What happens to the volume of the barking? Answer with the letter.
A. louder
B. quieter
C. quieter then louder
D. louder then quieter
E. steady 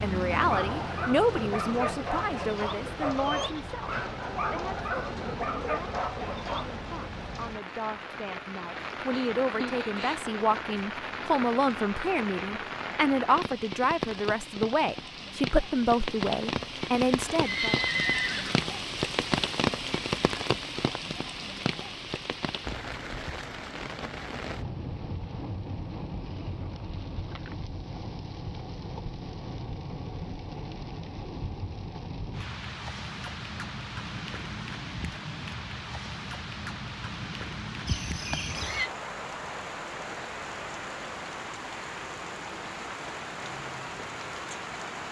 E.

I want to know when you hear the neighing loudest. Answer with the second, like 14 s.
18 s.